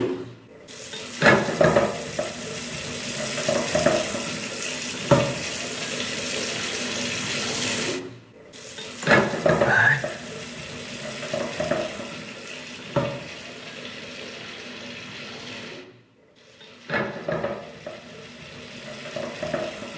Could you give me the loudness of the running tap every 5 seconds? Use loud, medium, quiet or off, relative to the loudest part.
loud, loud, medium, medium.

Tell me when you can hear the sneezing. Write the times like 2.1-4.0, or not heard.
9.0-10.1.